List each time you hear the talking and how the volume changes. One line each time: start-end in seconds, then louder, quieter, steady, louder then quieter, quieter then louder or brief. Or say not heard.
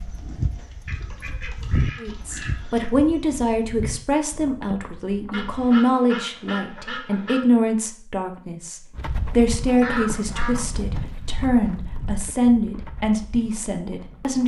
2.0-14.4 steady.